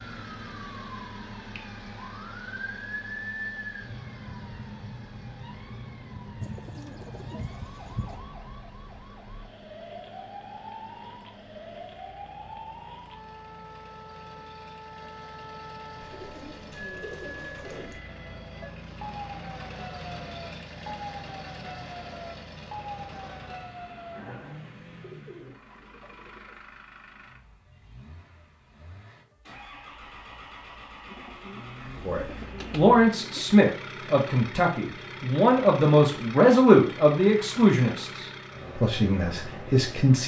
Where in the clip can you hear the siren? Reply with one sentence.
You can hear the siren from 0.0 to 24.8 s.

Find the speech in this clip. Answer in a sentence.
You can hear the speech from 32.0 to 40.2 s.